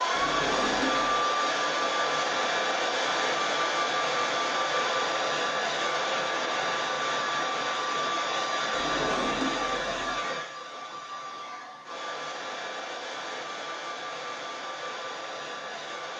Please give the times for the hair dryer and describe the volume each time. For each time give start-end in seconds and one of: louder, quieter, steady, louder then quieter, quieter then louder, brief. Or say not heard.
0.0-16.1 quieter.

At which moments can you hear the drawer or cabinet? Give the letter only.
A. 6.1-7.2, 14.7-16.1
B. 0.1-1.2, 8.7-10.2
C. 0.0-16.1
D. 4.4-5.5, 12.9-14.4
B.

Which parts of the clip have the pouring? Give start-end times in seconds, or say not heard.
not heard.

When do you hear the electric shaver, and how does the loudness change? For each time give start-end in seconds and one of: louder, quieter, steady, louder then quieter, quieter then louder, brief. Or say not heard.
not heard.